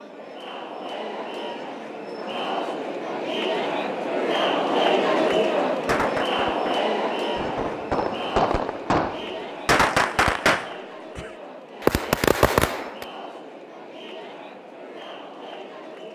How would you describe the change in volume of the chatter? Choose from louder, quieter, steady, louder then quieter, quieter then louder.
louder then quieter.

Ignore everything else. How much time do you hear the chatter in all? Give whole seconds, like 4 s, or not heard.
16 s.